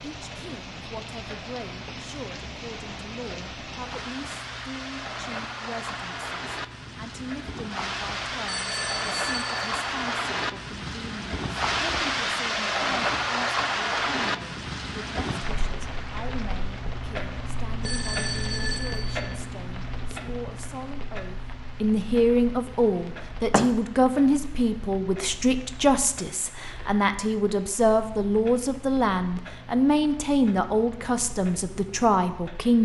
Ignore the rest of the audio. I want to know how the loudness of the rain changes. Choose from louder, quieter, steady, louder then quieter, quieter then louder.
louder then quieter.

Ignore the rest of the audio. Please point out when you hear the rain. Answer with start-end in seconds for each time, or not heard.
0.0-32.7.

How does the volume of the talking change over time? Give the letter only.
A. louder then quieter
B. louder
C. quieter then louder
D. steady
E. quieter
B.